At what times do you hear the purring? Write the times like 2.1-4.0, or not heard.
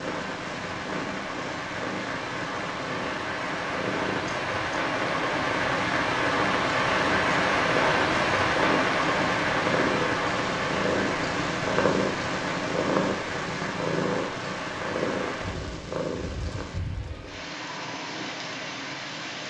0.0-16.8.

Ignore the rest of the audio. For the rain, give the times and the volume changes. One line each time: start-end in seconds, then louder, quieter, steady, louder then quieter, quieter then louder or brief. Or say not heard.
0.0-19.4 louder then quieter.